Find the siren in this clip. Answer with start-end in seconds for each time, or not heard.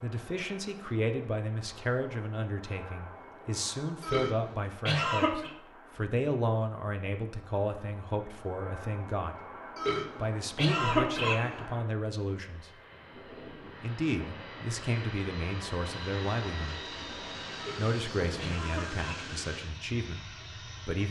not heard.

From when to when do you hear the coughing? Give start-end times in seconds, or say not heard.
4.0-5.5, 9.8-11.6, 17.6-19.3.